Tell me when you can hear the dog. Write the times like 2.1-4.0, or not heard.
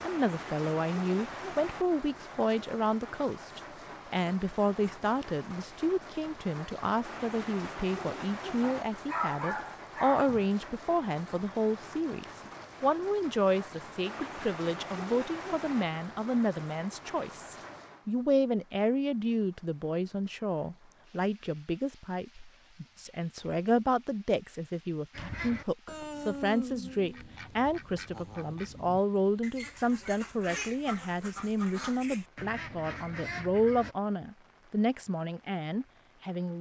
8.6-10.5.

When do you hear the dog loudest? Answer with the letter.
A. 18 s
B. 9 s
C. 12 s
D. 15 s
B.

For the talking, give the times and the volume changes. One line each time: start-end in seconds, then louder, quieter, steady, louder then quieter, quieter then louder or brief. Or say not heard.
0.0-36.5 steady.